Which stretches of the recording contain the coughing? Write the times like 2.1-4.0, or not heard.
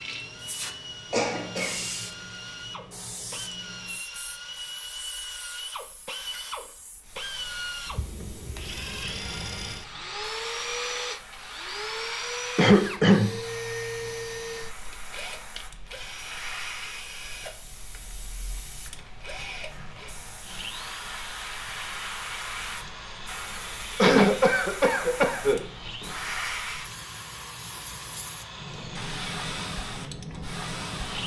1.1-1.9, 12.6-13.3, 23.9-25.6.